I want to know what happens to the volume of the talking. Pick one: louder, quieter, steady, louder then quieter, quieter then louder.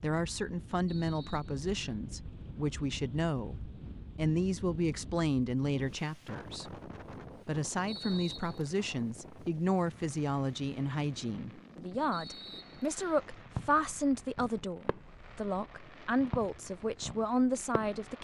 steady.